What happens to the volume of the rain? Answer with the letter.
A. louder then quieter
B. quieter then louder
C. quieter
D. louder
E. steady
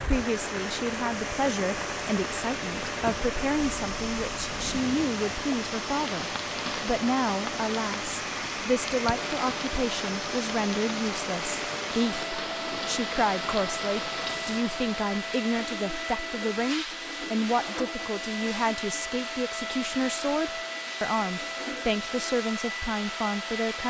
E.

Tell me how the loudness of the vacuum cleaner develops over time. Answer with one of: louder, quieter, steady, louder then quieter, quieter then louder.
steady.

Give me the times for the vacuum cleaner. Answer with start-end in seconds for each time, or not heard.
0.0-23.8.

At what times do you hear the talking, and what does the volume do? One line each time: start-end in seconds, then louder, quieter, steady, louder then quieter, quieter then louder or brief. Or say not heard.
0.0-23.8 steady.